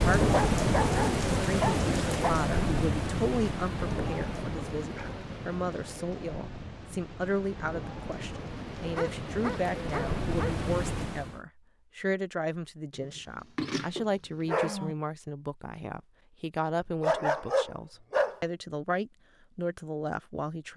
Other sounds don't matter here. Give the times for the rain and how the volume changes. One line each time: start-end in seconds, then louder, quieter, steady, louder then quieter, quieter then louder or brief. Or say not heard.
0.0-11.4 quieter then louder.